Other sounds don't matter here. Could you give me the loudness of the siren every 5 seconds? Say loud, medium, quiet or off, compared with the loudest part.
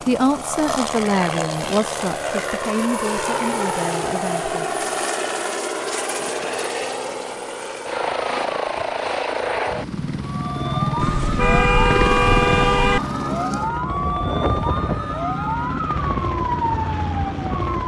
off, off, loud, loud.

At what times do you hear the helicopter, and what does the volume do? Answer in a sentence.
You can hear the helicopter from 0.0 to 17.8 s, at a steady volume.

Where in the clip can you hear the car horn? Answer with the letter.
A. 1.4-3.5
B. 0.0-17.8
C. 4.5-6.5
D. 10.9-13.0
D.